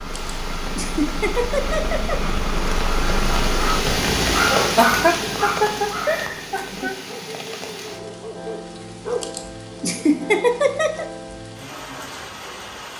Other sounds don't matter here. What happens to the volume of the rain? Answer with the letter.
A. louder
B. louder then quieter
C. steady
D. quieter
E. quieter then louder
B.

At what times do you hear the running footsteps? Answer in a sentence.
The running footsteps can't be heard in this clip.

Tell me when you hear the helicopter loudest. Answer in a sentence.
The loudest moment of the helicopter is at 3 seconds.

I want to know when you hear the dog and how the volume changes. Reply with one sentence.
You can hear the dog from 3.5 to 9.2 s, getting quieter.